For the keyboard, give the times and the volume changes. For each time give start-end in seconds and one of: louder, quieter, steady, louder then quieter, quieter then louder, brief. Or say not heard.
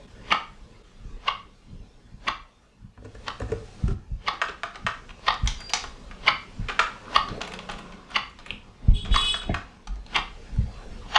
3.0-10.1 quieter then louder.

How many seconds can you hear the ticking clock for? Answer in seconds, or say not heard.
11 s.